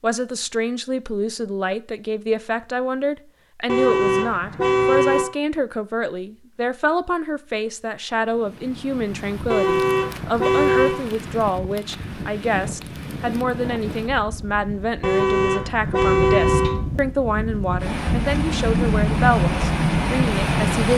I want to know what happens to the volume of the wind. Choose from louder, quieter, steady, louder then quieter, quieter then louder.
louder.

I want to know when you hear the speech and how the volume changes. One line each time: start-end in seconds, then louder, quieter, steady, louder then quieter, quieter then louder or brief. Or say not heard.
0.0-20.9 steady.